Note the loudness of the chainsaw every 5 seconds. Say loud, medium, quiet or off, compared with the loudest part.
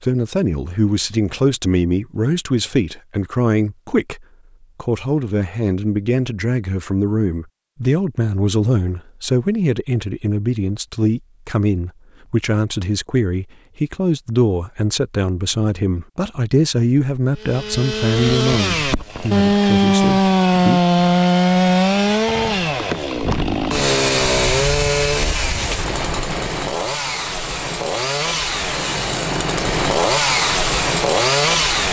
off, off, off, loud, loud, medium, loud.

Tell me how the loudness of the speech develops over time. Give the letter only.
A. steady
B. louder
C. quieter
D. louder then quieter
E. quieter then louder
A.